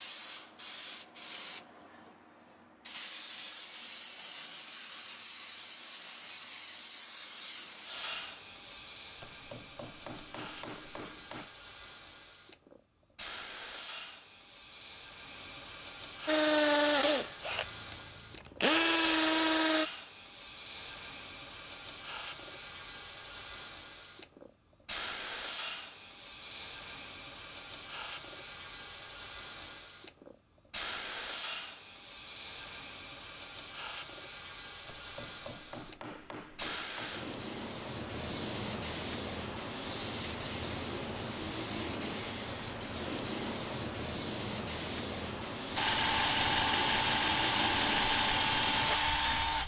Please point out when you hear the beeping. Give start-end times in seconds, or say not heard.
not heard.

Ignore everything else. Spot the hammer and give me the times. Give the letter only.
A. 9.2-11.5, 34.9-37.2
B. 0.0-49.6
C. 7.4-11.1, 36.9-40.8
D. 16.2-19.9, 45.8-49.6
A.